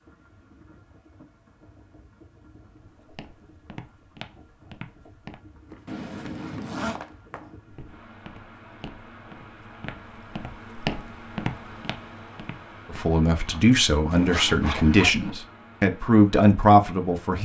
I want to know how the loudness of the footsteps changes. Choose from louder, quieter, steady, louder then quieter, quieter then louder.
louder.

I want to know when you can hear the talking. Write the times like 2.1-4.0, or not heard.
12.9-17.4.